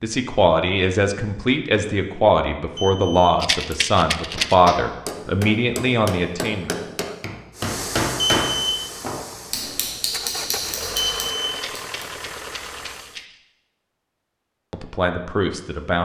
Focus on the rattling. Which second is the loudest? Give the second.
4 s.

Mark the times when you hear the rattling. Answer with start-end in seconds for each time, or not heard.
3.4-4.5, 11.5-13.3.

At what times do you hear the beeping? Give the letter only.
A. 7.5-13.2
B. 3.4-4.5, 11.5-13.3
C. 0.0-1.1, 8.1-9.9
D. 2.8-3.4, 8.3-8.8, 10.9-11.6
D.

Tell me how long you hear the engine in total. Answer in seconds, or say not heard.
6 s.